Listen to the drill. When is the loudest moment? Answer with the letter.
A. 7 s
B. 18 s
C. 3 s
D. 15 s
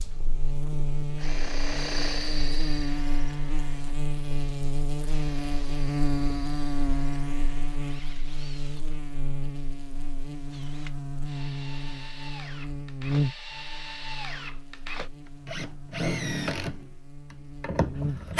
B.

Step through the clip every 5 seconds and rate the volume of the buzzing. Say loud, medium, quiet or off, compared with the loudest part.
loud, loud, loud, medium.